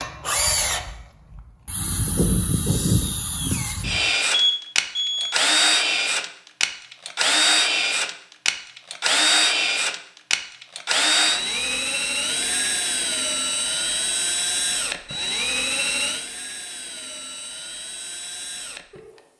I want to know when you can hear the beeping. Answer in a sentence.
The beeping can be heard from 4.3 to 5.3 s.